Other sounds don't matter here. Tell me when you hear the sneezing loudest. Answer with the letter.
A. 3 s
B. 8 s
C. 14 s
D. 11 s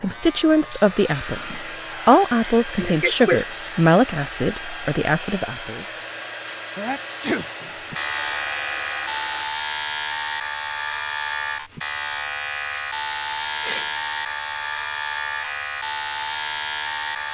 A.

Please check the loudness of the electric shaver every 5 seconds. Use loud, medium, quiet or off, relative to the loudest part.
medium, loud, loud, loud.